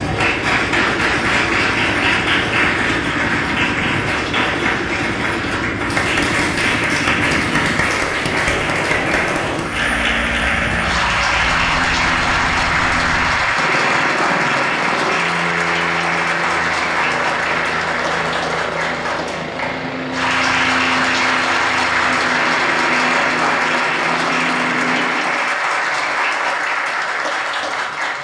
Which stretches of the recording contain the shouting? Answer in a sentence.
You can't hear the shouting here.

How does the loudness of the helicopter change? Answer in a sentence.
The volume of the helicopter stays about the same.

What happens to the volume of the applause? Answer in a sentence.
The loudness of the applause stays about the same.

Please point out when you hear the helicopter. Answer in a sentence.
The helicopter can be heard from 0.0 to 25.6 s.